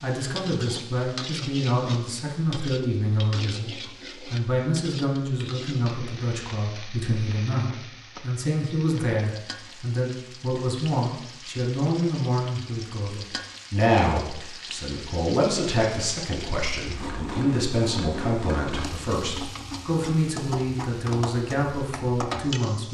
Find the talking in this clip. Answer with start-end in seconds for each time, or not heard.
0.0-22.8.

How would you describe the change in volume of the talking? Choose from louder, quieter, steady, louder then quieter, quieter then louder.
steady.